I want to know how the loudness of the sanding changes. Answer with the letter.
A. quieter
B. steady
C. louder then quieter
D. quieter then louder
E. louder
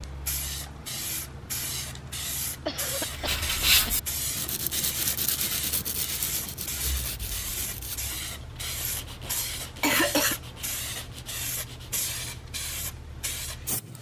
A.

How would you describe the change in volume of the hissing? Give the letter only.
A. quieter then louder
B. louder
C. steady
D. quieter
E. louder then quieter
C.